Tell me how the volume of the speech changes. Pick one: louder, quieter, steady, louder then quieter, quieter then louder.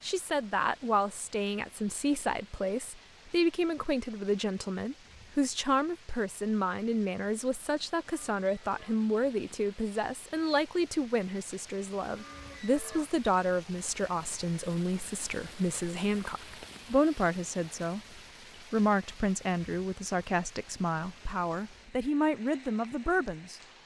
steady.